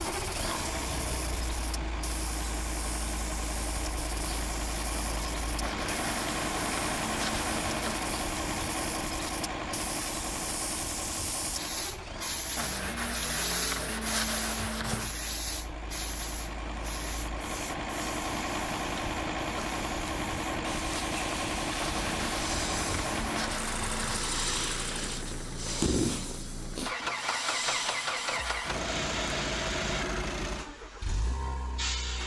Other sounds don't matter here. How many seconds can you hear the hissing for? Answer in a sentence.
You can hear the hissing for 32 seconds altogether.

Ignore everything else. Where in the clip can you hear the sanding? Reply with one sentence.
You can hear the sanding from 5.6 to 8.1 s, from 12.6 to 15.1 s and from 21.8 to 24.2 s.